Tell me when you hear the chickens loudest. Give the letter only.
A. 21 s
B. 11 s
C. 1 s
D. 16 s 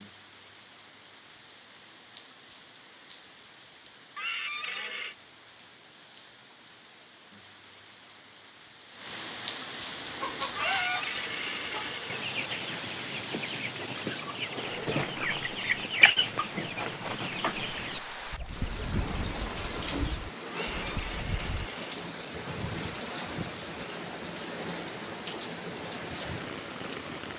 D.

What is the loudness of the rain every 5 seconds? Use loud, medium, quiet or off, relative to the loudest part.
quiet, medium, loud, loud, loud, loud.